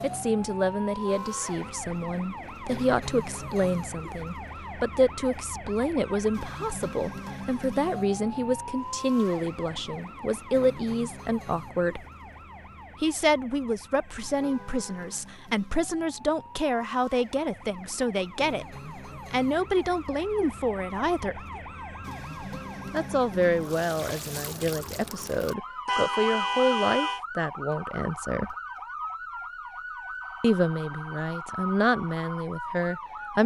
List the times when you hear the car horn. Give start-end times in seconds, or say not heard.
1.0-1.8, 14.3-15.2, 25.9-27.2.